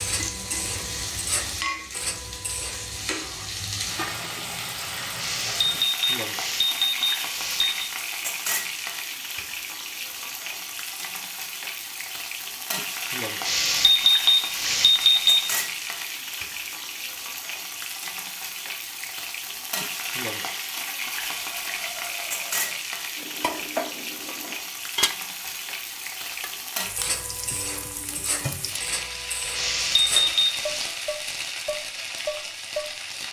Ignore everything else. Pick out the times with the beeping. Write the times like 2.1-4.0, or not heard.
5.2-7.9, 13.4-15.7, 29.6-30.9.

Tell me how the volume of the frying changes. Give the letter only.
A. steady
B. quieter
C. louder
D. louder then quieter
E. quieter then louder
A.